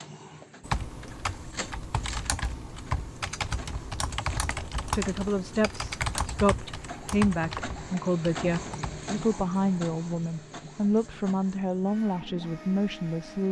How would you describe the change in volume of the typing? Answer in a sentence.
The loudness of the typing stays about the same.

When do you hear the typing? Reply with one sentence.
The typing can be heard from 0.6 to 9.2 s.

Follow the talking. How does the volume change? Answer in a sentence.
The loudness of the talking stays about the same.